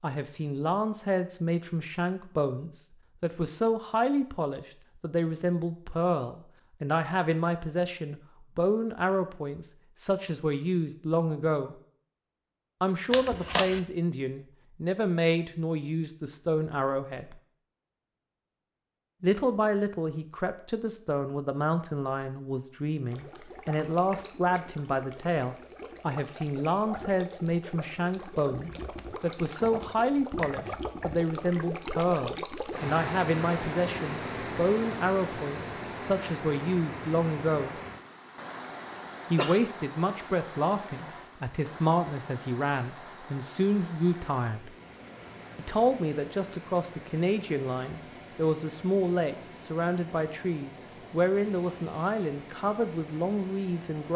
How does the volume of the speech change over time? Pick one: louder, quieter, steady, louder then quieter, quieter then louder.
steady.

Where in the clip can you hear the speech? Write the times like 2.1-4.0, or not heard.
0.0-11.8, 12.8-17.4, 19.2-37.8, 39.3-44.7, 45.5-54.1.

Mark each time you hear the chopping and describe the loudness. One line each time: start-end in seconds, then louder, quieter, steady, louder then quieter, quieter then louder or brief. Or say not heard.
not heard.